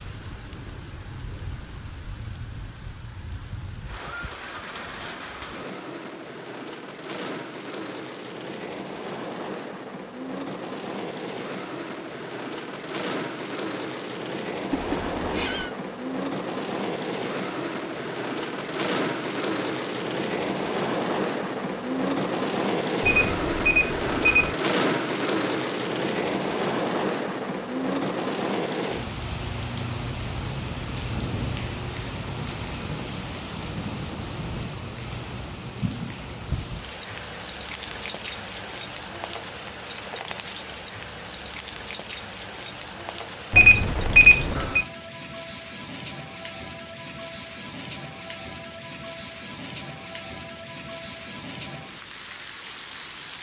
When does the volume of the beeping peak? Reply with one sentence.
The loudest moment of the beeping is at 44 seconds.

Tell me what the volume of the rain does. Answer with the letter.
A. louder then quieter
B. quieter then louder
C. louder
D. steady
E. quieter
A.